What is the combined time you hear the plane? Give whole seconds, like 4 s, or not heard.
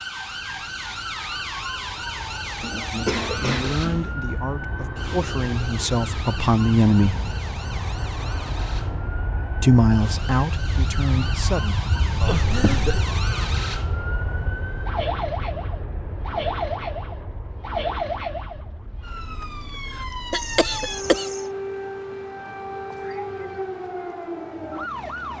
21 s.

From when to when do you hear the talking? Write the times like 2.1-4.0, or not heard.
2.9-7.2, 9.6-11.8.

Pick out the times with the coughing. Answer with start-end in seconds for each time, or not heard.
2.6-4.2, 12.2-13.1, 20.3-21.4.